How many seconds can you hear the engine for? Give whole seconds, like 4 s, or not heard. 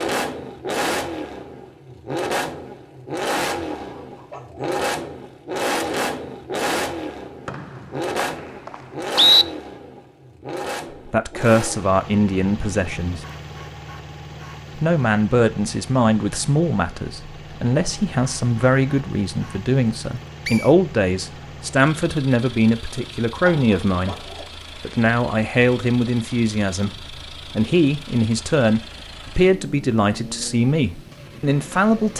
32 s.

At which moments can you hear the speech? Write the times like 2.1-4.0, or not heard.
11.1-13.2, 14.8-32.1.